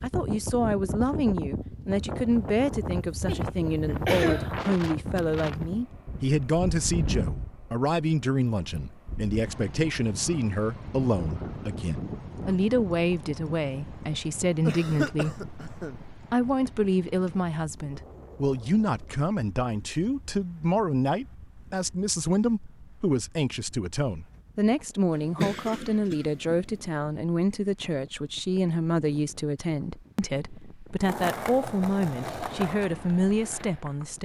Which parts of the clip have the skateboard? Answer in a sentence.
You can hear the skateboard from 31.0 to 34.2 s.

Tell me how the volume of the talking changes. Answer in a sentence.
The volume of the talking stays about the same.